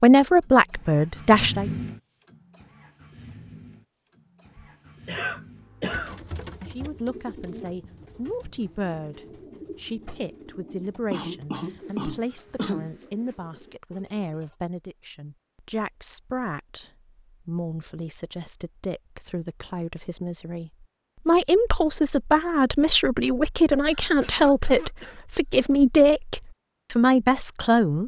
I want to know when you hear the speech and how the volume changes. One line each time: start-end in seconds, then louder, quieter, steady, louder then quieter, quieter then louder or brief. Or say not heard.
0.0-1.7 brief
6.7-28.0 louder.